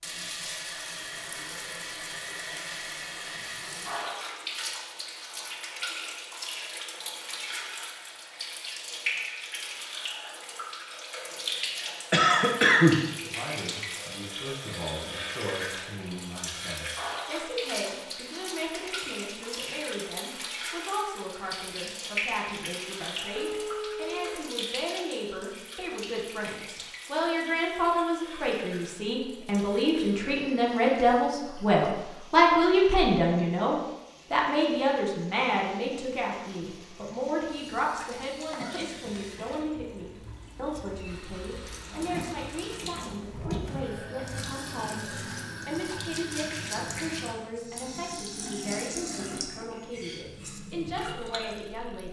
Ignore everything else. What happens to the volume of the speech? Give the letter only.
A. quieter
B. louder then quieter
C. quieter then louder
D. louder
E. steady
B.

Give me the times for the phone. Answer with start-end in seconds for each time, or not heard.
23.3-24.4.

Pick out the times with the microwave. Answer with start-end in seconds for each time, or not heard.
not heard.